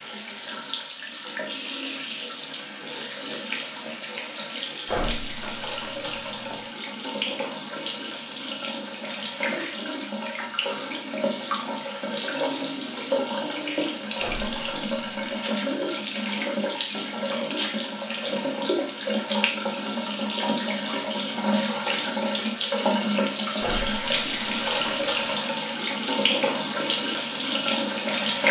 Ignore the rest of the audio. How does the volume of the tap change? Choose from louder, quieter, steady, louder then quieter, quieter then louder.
louder.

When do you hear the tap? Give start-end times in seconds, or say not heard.
0.0-28.4.